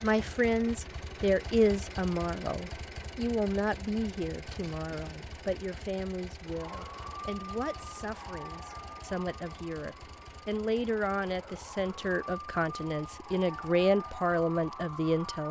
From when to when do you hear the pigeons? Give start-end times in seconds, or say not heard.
not heard.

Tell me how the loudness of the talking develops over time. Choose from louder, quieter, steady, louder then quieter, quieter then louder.
quieter then louder.